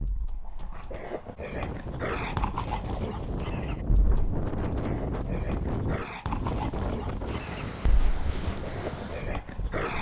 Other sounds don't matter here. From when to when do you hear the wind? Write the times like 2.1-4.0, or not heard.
1.5-9.9.